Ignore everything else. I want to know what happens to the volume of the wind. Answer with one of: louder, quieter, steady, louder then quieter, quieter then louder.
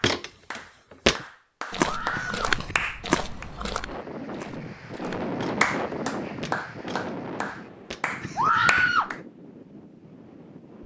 louder then quieter.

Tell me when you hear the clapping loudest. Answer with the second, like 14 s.
6 s.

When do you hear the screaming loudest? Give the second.
9 s.